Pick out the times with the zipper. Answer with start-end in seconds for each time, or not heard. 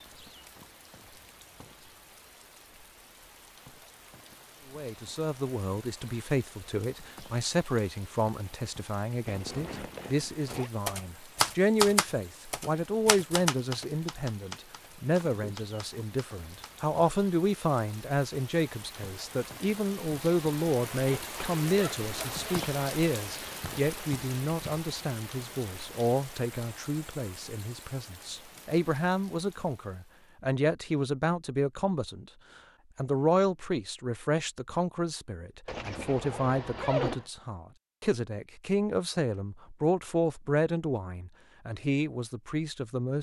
9.2-10.7, 20.8-22.7, 35.6-37.3.